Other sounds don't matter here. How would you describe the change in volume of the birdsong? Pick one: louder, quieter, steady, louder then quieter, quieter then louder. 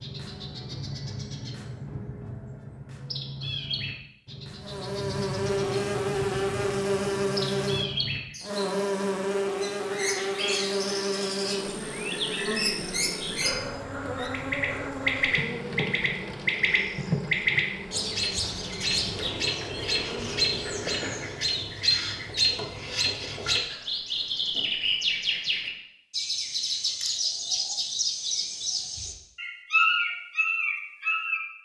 louder.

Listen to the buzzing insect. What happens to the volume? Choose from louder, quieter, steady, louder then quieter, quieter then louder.
quieter.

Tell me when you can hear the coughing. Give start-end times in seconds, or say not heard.
not heard.